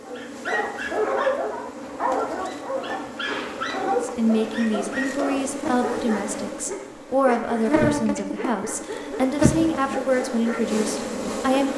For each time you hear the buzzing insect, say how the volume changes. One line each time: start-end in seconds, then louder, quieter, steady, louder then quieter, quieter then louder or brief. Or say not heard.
0.0-11.7 louder.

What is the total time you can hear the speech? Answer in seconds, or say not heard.
8 s.